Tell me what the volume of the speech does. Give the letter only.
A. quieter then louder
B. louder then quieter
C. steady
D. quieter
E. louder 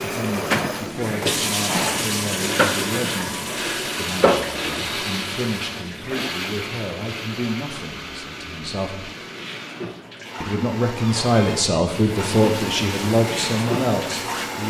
E.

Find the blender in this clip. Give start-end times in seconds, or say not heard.
0.0-14.6.